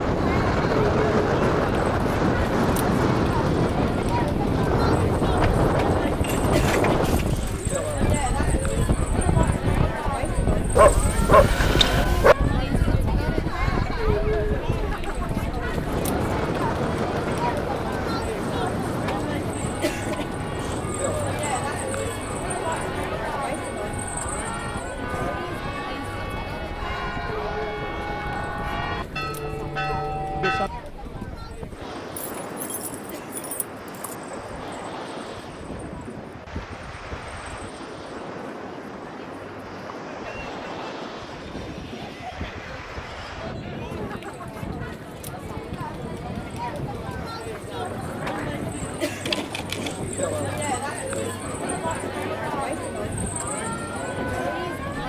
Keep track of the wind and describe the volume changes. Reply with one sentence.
The volume of the wind goes down.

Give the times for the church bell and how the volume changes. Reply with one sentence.
You can hear the church bell from 19.7 to 30.7 s, getting louder.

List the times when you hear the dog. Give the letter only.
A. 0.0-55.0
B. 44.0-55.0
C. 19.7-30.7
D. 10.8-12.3
D.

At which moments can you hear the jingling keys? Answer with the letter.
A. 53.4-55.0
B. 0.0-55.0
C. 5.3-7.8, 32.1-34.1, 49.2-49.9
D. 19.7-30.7
C.